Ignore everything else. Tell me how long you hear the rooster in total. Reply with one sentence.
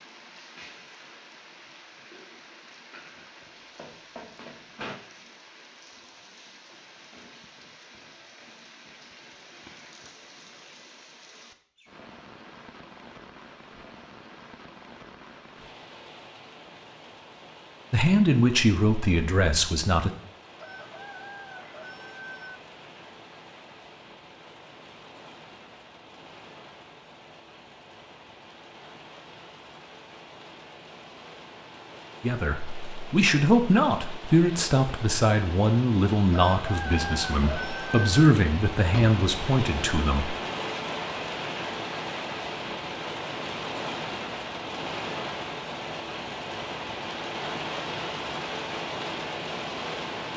You can hear the rooster for 4 seconds altogether.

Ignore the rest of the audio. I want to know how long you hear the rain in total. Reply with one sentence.
The rain can be heard for 50 seconds in total.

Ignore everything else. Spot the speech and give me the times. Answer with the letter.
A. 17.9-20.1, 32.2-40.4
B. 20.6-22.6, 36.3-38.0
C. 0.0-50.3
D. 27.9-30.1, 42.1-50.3
A.